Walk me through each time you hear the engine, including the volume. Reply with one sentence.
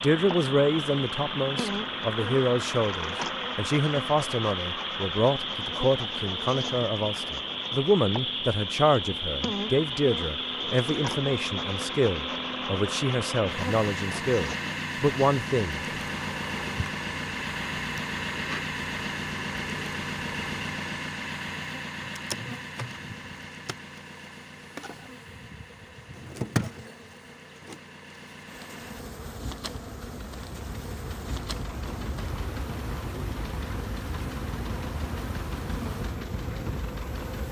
You can hear the engine from 0.0 to 37.4 s, getting quieter then louder.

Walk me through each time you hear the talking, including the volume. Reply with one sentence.
You can hear the talking from 0.0 to 15.8 s, at a steady volume.